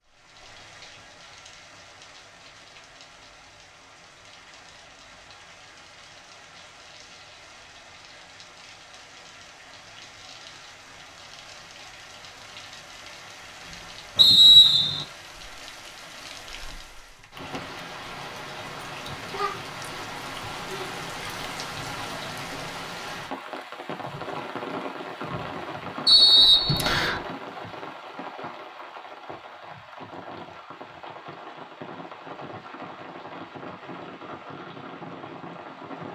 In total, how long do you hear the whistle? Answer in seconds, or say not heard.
2 s.